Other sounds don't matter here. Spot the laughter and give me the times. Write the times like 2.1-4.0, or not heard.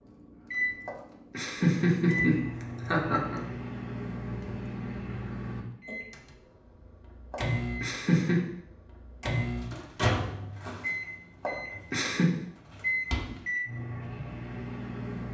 0.8-3.4, 7.3-8.4, 11.4-12.3.